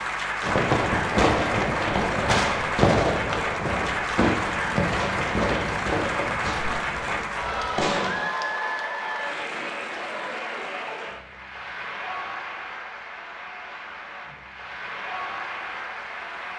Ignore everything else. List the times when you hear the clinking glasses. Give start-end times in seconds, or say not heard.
not heard.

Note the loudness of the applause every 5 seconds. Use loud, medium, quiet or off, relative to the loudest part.
loud, loud, medium, medium.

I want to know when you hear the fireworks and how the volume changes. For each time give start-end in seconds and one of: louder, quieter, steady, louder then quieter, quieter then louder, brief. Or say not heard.
0.4-8.2 quieter.